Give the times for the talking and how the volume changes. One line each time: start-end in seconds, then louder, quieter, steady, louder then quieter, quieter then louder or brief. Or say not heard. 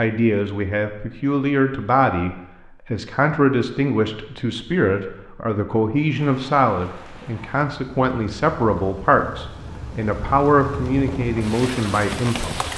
0.0-12.7 steady.